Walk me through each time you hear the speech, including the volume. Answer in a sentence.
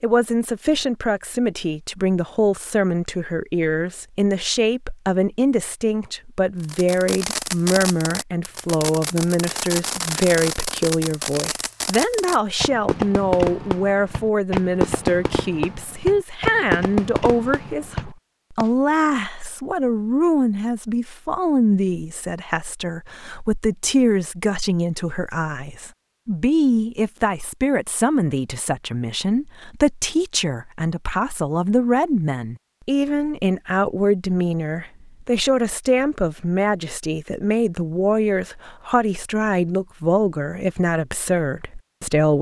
You can hear the speech from 0.0 to 42.3 s, at a steady volume.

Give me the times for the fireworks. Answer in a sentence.
The fireworks can be heard from 6.6 to 18.7 s.